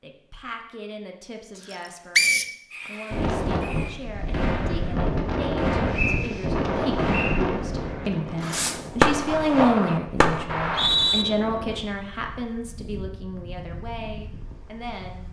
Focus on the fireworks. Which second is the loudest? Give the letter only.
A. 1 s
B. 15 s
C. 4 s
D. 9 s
D.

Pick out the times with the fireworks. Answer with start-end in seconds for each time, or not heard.
2.7-10.4.